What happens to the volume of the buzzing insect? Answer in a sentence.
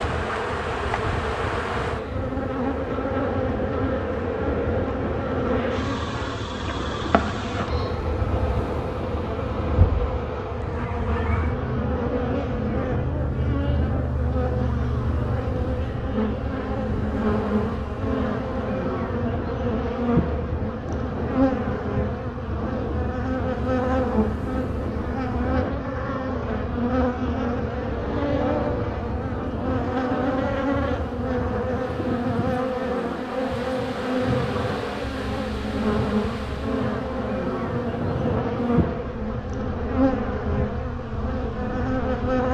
The volume of the buzzing insect stays about the same.